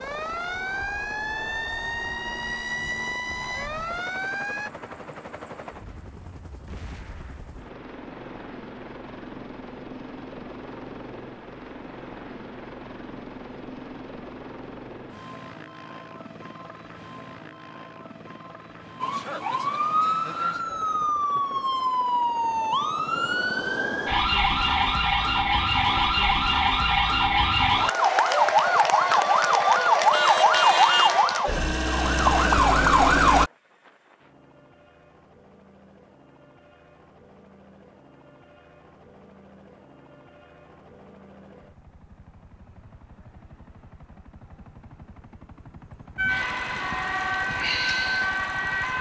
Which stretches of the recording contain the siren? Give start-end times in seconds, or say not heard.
0.0-4.7, 19.0-33.5, 46.1-48.9.